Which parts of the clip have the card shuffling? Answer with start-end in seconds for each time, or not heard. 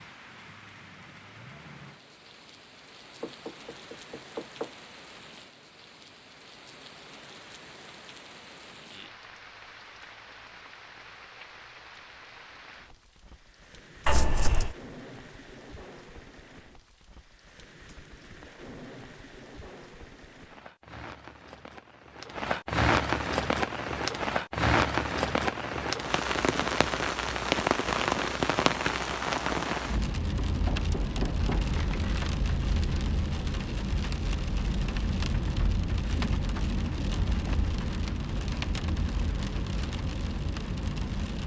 14.1-14.8, 31.6-32.2.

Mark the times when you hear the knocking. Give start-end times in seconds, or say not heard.
3.2-4.8, 30.4-31.7.